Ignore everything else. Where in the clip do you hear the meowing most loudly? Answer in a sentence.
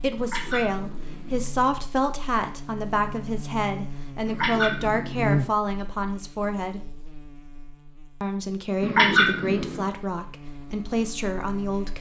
The loudest moment of the meowing is at 9 seconds.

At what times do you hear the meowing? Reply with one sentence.
The meowing can be heard from 0.1 to 1.4 s, from 4.2 to 5.5 s and from 8.8 to 9.8 s.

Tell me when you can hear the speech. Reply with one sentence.
The speech can be heard from 0.0 to 6.9 s and from 8.2 to 11.9 s.